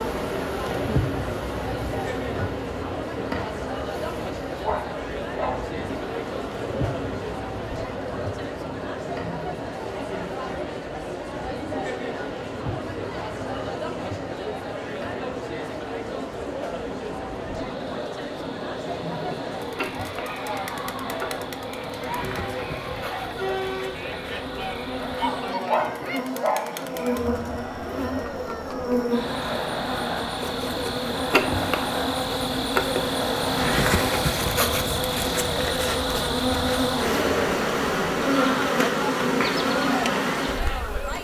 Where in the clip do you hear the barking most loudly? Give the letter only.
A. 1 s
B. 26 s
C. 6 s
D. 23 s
B.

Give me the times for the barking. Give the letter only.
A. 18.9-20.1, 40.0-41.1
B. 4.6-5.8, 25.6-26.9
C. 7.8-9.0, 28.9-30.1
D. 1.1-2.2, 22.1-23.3
B.